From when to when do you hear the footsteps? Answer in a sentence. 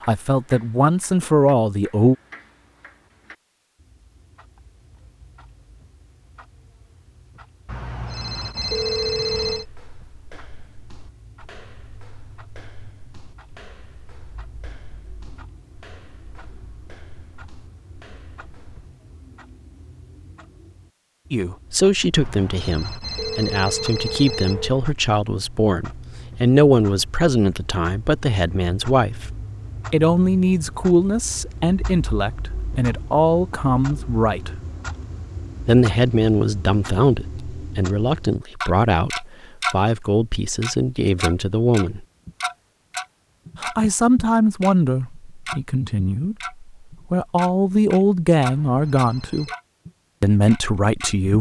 You can hear the footsteps from 9.4 to 18.9 s.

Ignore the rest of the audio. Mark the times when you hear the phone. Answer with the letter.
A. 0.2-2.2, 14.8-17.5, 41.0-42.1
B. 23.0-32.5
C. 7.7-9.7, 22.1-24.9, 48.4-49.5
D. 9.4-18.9
C.